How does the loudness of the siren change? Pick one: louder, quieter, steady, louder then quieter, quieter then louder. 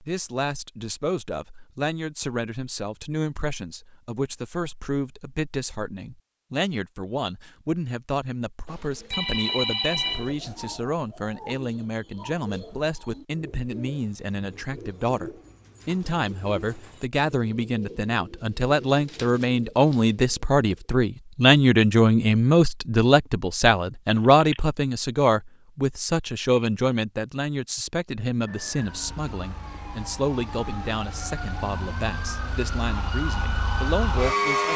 louder.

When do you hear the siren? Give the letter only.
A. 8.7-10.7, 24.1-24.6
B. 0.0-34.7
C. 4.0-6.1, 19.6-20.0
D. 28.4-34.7
D.